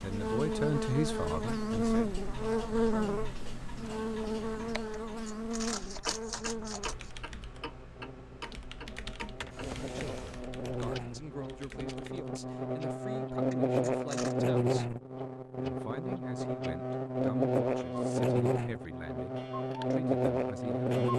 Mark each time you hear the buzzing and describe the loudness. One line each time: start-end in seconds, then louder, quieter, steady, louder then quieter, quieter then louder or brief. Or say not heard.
0.0-21.1 quieter then louder.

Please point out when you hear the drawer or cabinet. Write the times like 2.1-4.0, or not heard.
9.2-10.4.